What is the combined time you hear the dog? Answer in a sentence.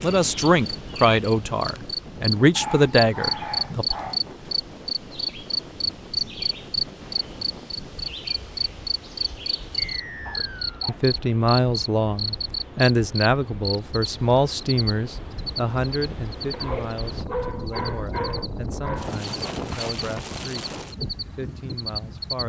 The dog can be heard for 5 seconds in total.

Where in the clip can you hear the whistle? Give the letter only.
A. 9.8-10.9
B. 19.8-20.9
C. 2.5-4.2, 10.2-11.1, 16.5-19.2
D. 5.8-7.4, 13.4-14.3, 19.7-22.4
A.